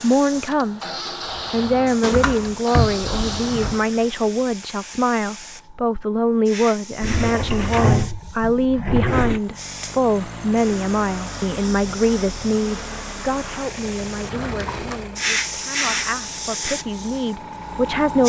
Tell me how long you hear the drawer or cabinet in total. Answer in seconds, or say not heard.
5 s.